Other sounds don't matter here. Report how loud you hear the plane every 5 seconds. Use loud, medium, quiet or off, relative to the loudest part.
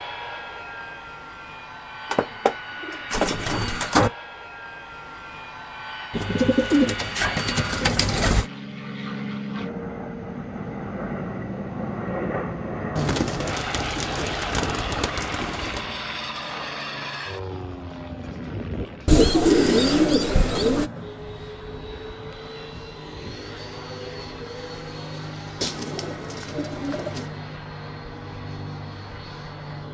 medium, loud, loud, loud, medium, medium.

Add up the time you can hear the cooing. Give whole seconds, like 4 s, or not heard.
11 s.